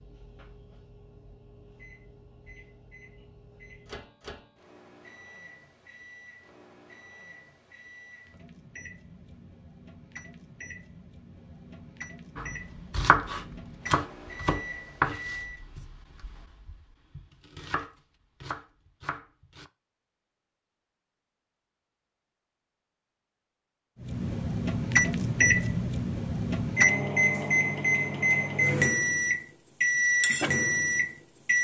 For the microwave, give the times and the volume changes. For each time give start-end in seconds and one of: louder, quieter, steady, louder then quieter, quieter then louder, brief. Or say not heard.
0.0-15.6 louder
24.0-31.5 steady.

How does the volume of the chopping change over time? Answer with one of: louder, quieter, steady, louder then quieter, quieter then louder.
quieter then louder.